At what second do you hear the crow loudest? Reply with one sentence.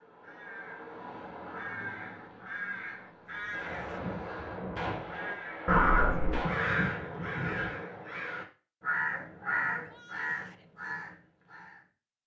The volume of the crow peaks at 6 seconds.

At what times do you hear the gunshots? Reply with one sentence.
The gunshots can be heard from 3.5 to 6.6 s.